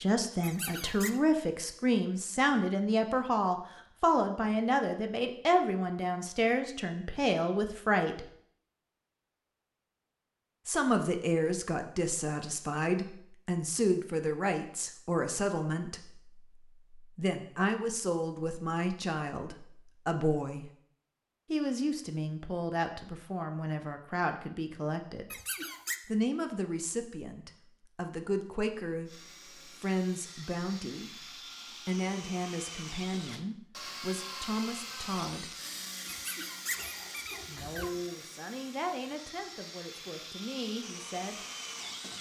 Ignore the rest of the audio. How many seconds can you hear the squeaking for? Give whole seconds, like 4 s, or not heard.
3 s.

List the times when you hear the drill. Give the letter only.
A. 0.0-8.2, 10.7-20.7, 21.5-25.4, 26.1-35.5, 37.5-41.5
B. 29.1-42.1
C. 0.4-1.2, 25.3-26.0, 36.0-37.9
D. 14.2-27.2
B.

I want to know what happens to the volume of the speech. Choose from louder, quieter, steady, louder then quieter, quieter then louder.
quieter.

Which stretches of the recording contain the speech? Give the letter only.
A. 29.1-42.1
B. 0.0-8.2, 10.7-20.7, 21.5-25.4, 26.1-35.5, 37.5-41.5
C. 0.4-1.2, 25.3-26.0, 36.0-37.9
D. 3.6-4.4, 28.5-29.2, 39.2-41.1
B.